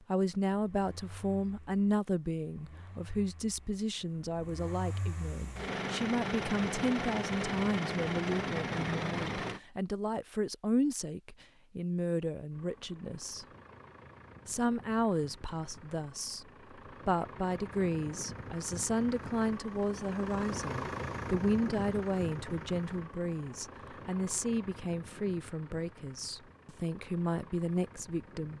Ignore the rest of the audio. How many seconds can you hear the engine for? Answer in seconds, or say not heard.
26 s.